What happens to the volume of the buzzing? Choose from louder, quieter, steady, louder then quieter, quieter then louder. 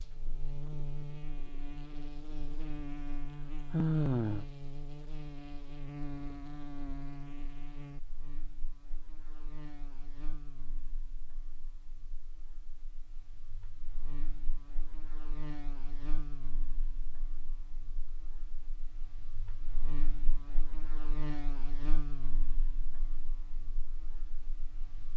quieter then louder.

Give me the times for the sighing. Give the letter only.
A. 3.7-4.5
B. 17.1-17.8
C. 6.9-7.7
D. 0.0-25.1
A.